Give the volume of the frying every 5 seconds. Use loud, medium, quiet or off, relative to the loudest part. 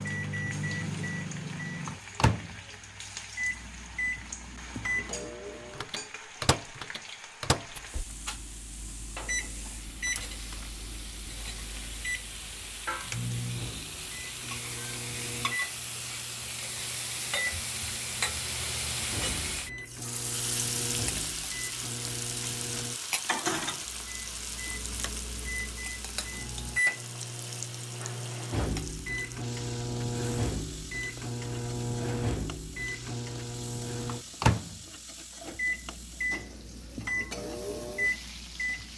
medium, medium, medium, loud, loud, medium, medium, medium.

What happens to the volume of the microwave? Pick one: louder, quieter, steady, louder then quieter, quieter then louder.
quieter then louder.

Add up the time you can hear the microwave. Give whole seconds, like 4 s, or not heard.
39 s.